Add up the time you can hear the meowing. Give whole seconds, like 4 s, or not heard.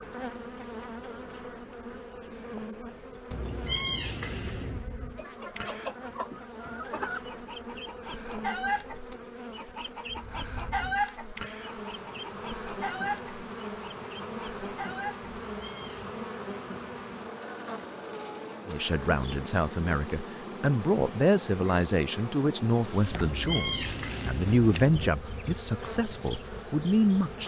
4 s.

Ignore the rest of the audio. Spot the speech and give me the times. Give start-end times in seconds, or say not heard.
18.6-27.4.